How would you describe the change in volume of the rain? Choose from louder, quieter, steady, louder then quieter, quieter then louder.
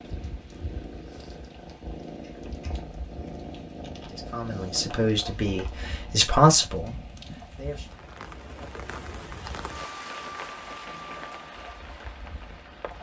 louder.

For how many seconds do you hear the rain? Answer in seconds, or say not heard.
13 s.